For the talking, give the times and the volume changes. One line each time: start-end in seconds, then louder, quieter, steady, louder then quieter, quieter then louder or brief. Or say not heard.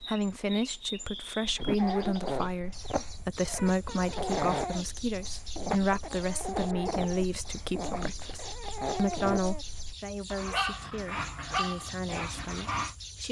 0.0-13.2 quieter.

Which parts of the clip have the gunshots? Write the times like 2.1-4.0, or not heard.
not heard.